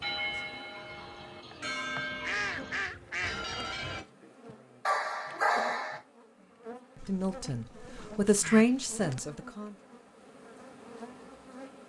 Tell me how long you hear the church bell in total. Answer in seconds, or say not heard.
4 s.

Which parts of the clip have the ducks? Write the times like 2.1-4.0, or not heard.
2.2-3.5, 7.0-9.2.